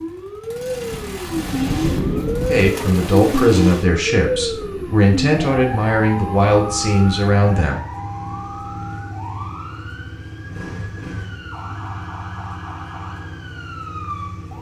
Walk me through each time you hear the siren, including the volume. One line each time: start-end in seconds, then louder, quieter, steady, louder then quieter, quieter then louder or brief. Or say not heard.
0.0-14.5 quieter.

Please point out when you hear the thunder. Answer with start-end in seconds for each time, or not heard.
0.9-2.7.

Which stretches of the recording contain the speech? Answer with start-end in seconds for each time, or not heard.
2.5-7.8.